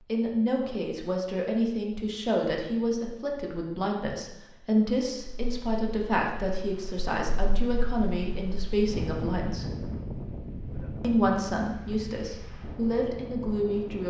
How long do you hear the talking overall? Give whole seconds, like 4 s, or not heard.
13 s.